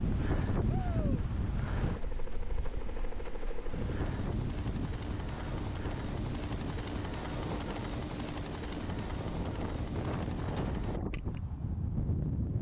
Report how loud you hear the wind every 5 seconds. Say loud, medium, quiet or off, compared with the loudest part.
loud, medium, loud.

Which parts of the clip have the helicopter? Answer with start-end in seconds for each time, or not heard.
1.8-11.0.